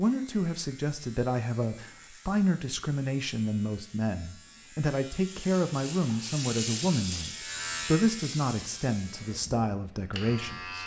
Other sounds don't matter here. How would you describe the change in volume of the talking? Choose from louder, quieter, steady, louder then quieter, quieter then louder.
steady.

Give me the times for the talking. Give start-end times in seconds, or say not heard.
0.0-10.8.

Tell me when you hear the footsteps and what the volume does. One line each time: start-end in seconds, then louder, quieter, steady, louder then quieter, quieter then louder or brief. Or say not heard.
not heard.